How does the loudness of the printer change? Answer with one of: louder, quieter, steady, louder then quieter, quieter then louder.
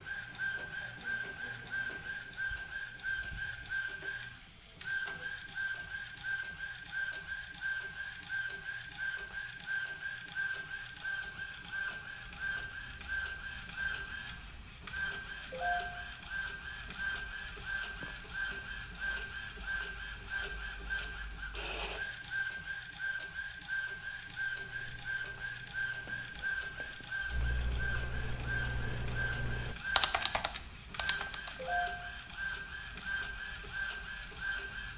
steady.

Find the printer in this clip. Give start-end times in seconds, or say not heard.
0.0-34.9.